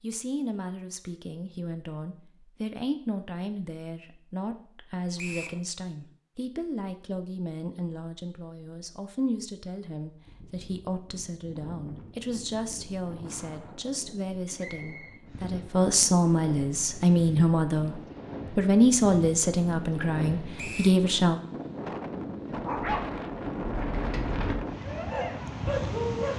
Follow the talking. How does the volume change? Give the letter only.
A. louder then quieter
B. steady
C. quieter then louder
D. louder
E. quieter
D.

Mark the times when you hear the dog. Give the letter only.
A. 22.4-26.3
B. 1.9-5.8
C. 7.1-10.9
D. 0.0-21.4
A.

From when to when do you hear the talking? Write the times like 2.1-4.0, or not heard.
0.0-21.4.